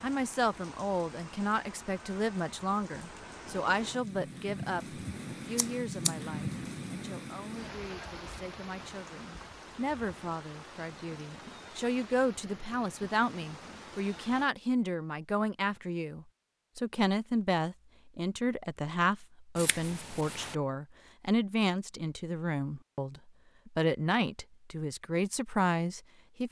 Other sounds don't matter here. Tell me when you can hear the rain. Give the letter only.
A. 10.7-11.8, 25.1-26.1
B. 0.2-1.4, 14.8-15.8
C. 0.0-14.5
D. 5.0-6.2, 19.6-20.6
C.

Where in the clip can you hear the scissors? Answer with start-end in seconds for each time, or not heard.
5.0-6.2, 19.6-20.6.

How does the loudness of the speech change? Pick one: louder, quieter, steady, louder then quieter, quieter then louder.
quieter then louder.